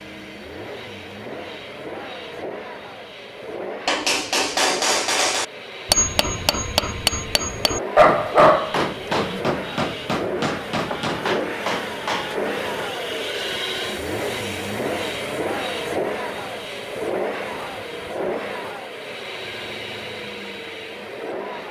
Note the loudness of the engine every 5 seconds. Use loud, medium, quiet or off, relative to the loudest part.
medium, medium, loud, loud, medium.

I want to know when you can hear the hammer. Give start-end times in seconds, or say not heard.
3.9-12.3.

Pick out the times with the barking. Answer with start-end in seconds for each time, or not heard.
8.0-9.4.